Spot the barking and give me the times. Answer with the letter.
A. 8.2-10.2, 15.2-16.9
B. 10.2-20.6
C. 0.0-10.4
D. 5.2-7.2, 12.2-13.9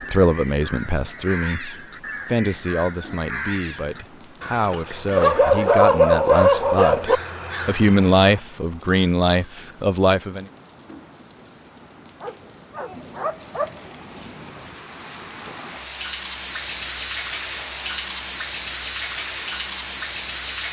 D.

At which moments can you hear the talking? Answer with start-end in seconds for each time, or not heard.
0.0-10.4.